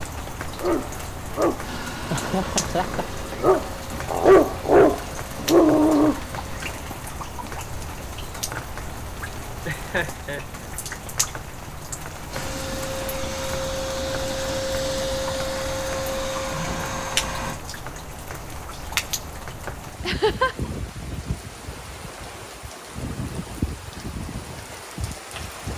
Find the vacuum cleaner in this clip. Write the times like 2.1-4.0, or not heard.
1.6-6.7, 12.2-17.6.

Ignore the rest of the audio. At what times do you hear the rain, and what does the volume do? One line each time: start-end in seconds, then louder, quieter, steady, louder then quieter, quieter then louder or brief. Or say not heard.
0.0-25.7 steady.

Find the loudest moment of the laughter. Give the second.
20 s.